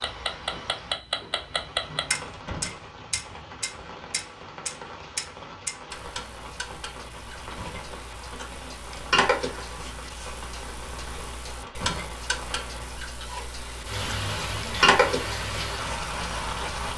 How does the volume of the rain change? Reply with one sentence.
The volume of the rain goes up.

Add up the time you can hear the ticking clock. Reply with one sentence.
The ticking clock can be heard for 17 seconds in total.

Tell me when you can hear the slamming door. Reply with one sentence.
The slamming door can be heard from 2.3 to 2.8 s, from 7.4 to 7.9 s and from 11.7 to 12.1 s.